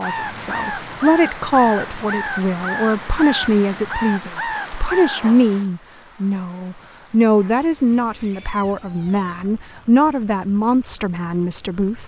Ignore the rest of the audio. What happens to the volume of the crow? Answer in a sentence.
The volume of the crow stays about the same.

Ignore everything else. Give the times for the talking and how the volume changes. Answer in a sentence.
The talking can be heard from 0.0 to 12.0 s, at a steady volume.